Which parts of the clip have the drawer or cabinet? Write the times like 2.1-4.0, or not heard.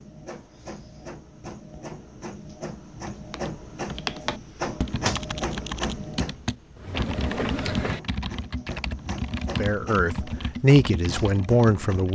not heard.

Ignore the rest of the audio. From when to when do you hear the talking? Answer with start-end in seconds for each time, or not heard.
9.6-12.1.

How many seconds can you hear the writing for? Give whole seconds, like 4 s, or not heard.
not heard.